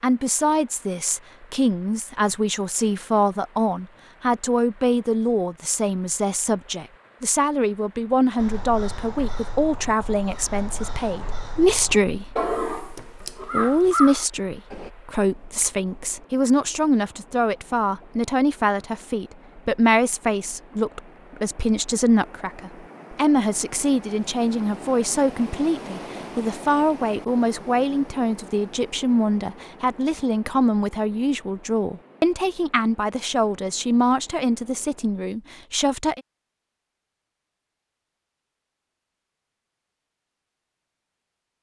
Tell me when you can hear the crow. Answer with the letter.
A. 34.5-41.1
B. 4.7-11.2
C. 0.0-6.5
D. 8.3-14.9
D.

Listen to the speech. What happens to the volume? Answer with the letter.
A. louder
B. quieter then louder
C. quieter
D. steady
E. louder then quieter
D.